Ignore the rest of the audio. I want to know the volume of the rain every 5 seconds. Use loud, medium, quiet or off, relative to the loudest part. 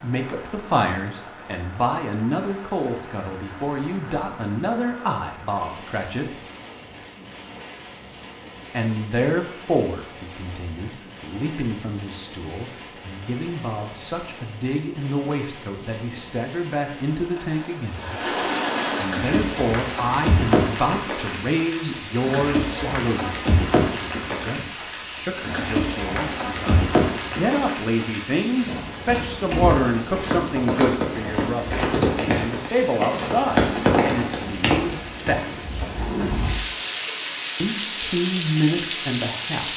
quiet, quiet, quiet, medium, loud, loud, loud, loud.